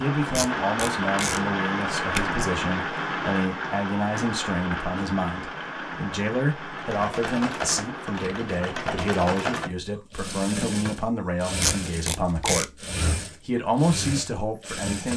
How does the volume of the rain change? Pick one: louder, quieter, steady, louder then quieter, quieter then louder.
quieter.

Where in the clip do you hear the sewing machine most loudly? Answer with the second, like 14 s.
9 s.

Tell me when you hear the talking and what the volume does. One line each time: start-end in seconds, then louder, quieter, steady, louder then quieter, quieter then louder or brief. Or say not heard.
0.0-12.8 steady
13.4-15.1 brief.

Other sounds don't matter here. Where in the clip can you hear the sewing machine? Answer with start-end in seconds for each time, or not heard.
6.7-15.1.